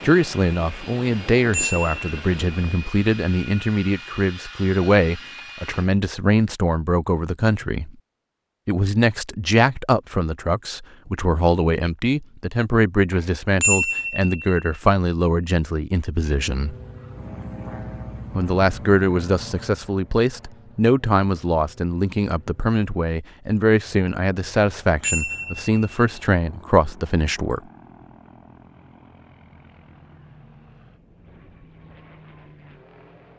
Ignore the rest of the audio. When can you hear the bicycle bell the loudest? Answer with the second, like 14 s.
14 s.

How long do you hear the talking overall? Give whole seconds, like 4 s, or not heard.
25 s.